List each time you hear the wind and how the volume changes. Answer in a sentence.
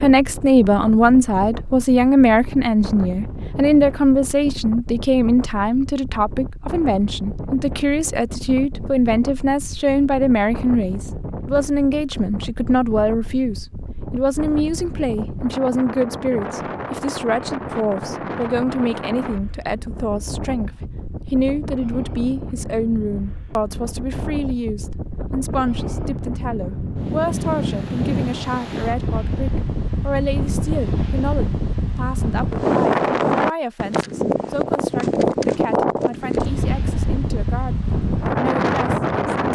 You can hear the wind from 0.0 to 39.5 s, getting louder.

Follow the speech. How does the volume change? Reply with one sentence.
The loudness of the speech goes down.